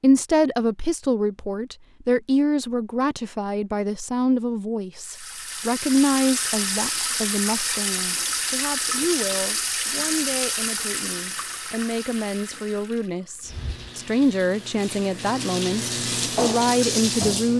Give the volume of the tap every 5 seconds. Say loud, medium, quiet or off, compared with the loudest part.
off, loud, medium, loud.